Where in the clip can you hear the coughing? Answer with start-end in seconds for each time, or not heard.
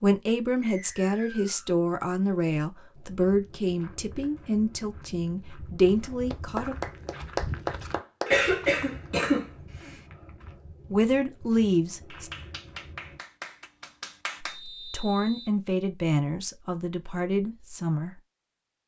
8.2-9.9.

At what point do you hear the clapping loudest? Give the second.
8 s.